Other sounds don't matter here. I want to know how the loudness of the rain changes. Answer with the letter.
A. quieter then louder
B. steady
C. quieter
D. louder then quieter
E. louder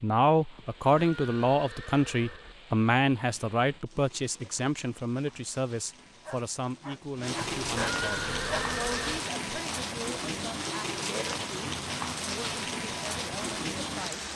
E.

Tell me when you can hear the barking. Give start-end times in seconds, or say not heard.
6.2-8.7.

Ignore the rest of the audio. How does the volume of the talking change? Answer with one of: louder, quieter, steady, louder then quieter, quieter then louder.
quieter.